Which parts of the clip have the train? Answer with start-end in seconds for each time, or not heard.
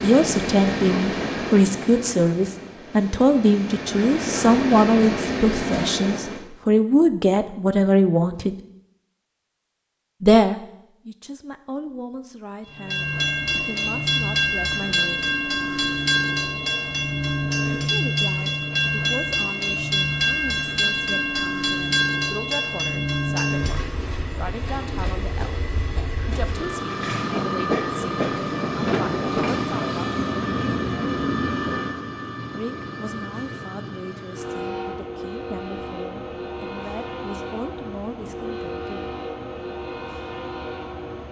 0.0-6.5, 12.7-41.2.